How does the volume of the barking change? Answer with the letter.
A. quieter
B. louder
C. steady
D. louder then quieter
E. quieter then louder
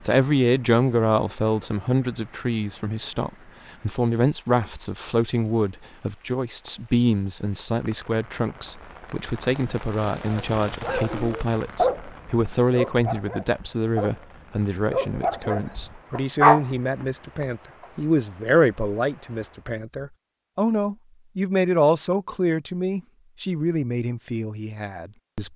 E.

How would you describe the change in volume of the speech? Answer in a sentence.
The loudness of the speech stays about the same.